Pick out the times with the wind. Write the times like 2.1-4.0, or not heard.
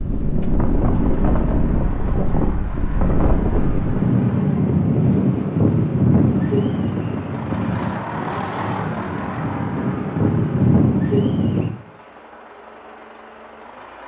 0.0-11.8.